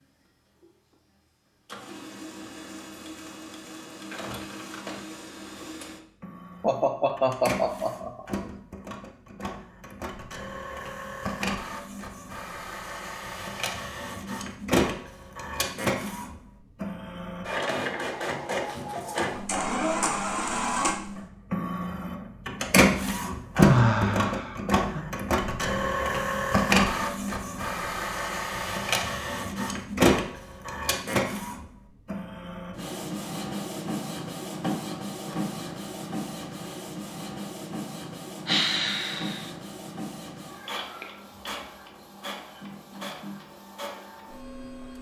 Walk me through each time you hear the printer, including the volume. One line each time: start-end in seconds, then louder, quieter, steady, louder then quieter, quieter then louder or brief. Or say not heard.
0.6-44.9 louder then quieter.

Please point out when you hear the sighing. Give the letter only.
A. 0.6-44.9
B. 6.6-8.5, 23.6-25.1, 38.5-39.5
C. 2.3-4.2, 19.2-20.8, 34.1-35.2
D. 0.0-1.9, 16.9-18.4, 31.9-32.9
B.